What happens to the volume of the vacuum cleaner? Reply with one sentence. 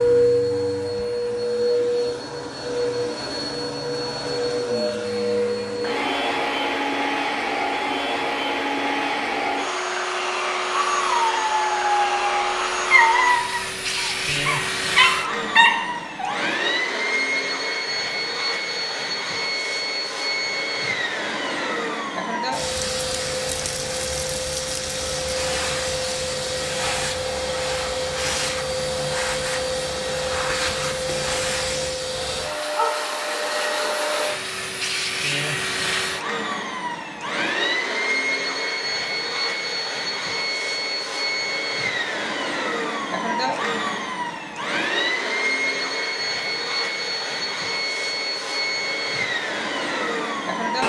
The loudness of the vacuum cleaner stays about the same.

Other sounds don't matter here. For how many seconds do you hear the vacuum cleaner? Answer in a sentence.
The vacuum cleaner can be heard for 51 seconds in total.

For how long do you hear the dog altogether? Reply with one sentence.
The dog can be heard for 6 seconds in total.